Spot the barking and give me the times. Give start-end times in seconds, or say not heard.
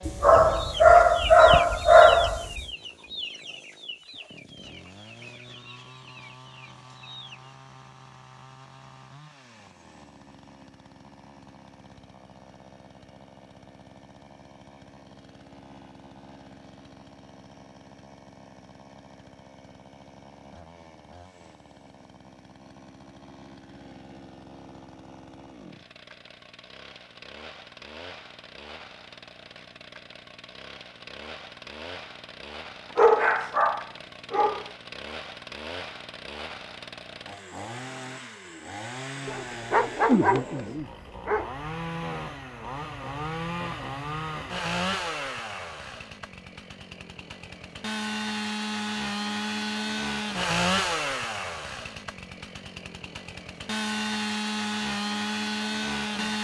0.1-2.6, 33.0-34.6, 39.2-41.5.